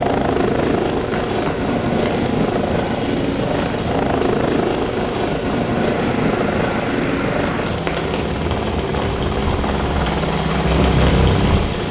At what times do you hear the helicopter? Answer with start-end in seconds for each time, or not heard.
0.0-11.8.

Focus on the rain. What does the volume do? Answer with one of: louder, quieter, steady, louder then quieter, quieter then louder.
louder.